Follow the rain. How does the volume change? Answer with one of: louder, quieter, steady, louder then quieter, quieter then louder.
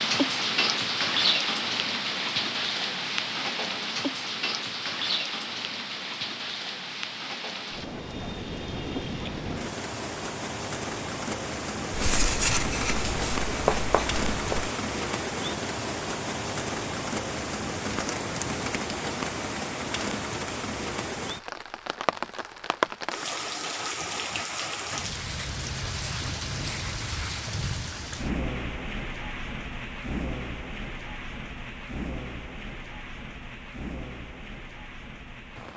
quieter.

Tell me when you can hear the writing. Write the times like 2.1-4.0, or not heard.
11.9-14.7.